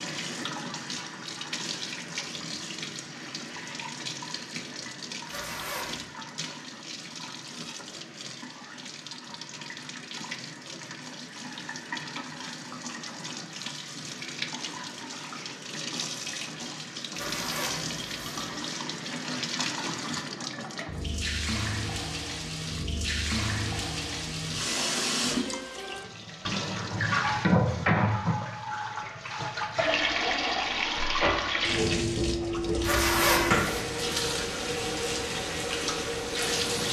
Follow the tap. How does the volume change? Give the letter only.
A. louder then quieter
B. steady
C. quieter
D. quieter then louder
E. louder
E.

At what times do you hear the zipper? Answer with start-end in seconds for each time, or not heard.
5.2-6.0, 17.1-18.5, 32.8-33.8.